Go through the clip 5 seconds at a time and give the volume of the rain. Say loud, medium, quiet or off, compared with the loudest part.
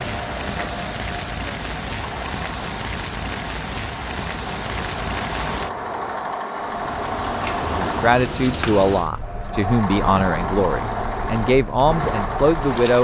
loud, loud, medium.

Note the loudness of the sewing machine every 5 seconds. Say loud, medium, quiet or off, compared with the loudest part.
medium, loud, loud.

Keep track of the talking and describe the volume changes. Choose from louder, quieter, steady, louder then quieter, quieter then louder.
steady.